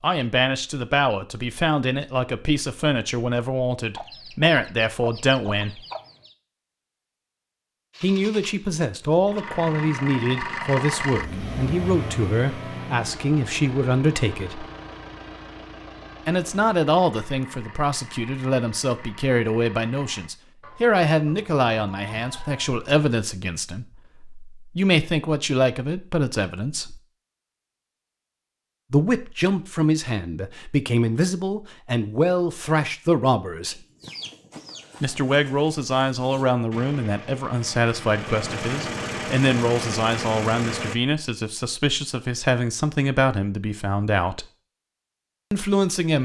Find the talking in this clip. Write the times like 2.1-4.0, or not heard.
0.0-5.8, 8.0-14.7, 16.2-27.0, 28.9-33.8, 35.0-44.5, 45.5-46.2.